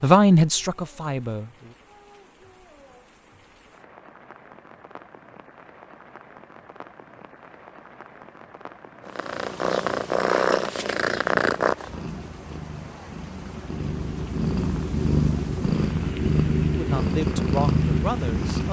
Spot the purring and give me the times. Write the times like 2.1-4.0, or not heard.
9.1-18.6.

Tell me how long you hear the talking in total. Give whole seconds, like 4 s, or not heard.
4 s.